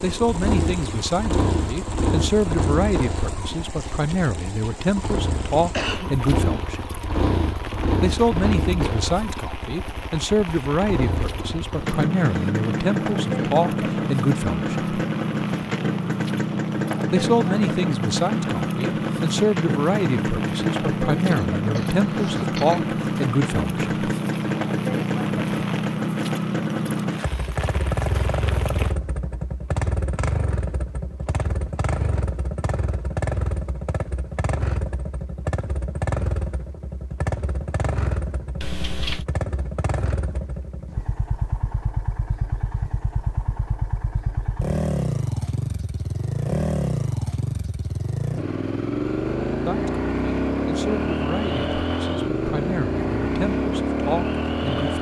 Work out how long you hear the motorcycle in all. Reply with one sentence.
You can hear the motorcycle for 55 seconds altogether.